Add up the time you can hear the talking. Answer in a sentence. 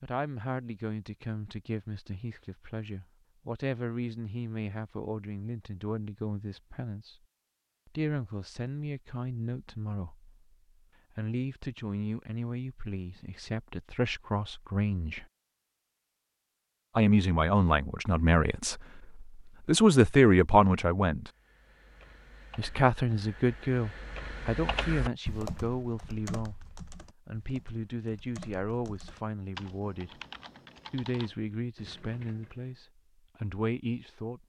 You can hear the talking for 29 seconds altogether.